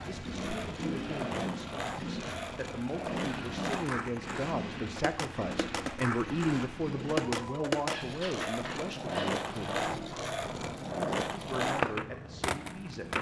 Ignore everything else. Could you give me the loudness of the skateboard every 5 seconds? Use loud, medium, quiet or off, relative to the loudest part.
medium, loud, loud.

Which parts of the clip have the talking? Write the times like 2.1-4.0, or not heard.
0.0-9.8, 11.4-13.1.